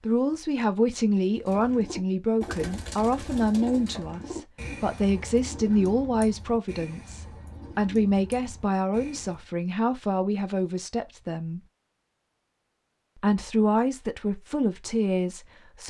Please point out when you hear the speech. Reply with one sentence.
The speech can be heard from 0.0 to 11.6 s and from 13.2 to 15.8 s.